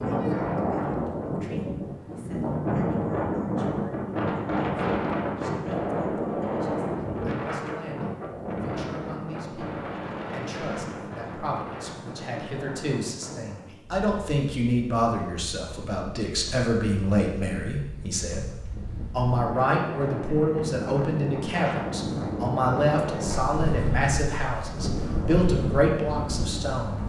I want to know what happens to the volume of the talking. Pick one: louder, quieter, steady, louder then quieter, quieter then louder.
louder.